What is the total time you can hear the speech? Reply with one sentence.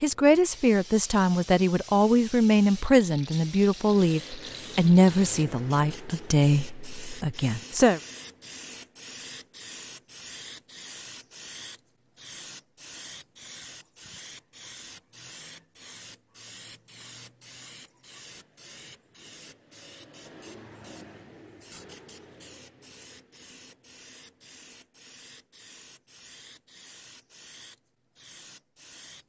You can hear the speech for 8 seconds altogether.